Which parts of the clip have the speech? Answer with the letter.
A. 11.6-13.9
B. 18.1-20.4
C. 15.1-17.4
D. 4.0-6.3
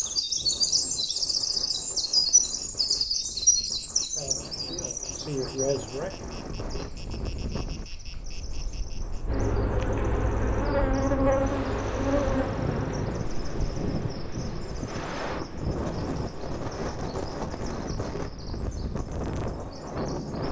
D.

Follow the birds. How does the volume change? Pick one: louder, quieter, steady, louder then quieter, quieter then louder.
quieter.